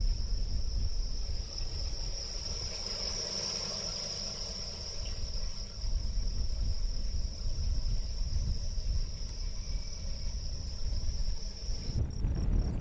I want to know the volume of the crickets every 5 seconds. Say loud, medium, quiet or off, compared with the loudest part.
loud, medium, medium.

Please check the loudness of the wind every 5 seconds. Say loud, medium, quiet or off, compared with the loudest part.
medium, medium, loud.